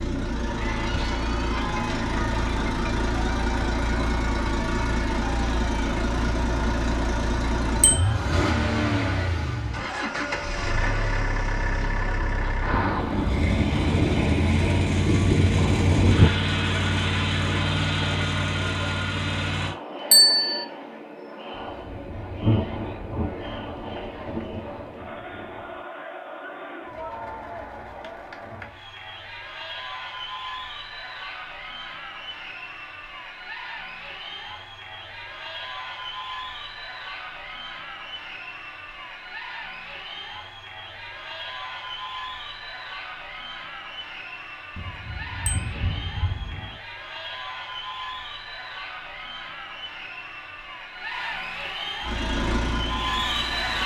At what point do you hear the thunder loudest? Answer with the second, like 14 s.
16 s.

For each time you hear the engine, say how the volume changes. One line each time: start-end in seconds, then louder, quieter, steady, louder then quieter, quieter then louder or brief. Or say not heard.
0.0-19.8 steady
52.0-53.8 brief.